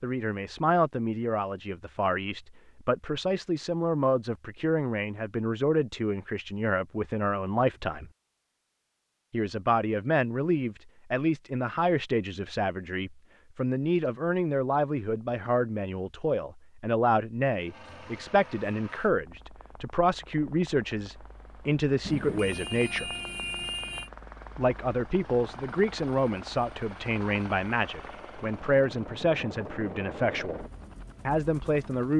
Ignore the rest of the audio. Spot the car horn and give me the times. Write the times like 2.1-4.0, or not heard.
22.0-24.1.